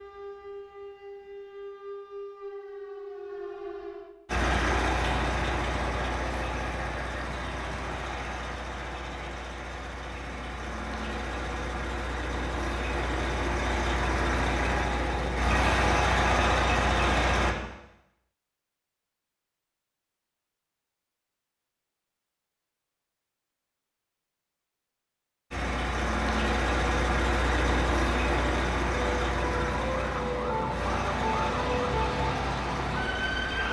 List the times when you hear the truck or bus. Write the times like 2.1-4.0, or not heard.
4.2-17.6, 25.5-33.6.